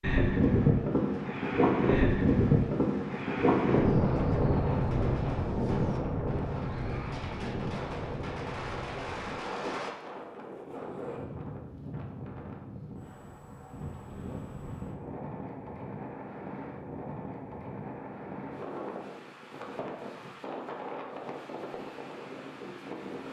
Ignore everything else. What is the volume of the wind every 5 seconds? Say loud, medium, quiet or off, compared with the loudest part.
loud, medium, quiet, quiet, quiet.